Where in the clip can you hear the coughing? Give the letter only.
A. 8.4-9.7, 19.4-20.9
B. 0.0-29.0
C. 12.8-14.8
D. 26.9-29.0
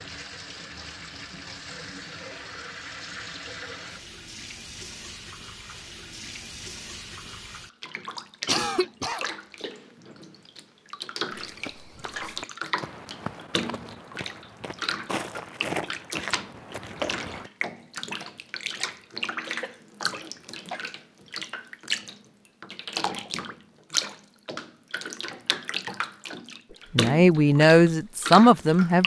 A.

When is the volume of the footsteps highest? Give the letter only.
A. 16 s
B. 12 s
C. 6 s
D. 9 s
A.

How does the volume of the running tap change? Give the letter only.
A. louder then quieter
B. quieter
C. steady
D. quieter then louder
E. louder
E.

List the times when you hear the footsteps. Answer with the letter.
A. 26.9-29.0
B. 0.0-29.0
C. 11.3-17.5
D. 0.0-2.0
C.